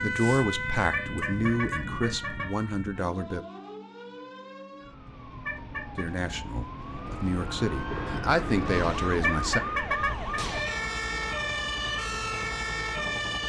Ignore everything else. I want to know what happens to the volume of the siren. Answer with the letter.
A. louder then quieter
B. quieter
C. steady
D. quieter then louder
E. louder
D.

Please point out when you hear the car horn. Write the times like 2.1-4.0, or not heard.
0.9-2.5, 5.5-6.0, 9.2-10.4.